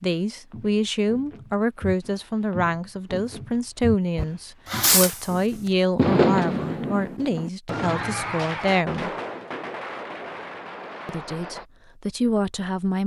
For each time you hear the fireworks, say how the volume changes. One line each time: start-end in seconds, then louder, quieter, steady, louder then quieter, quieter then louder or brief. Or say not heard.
4.2-5.3 brief
6.0-11.7 quieter.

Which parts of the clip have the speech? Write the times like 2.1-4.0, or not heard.
0.0-9.1, 11.1-13.0.